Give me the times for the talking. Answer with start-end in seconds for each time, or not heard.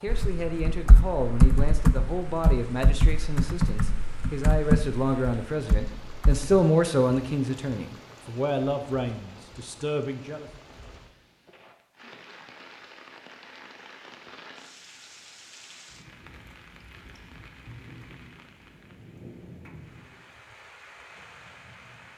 0.0-10.5.